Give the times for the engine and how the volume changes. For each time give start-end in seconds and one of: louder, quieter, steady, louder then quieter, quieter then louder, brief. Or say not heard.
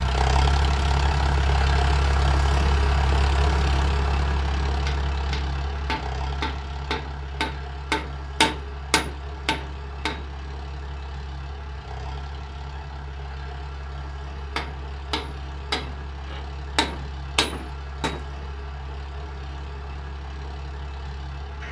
0.0-21.6 quieter.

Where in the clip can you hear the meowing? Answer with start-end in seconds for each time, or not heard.
not heard.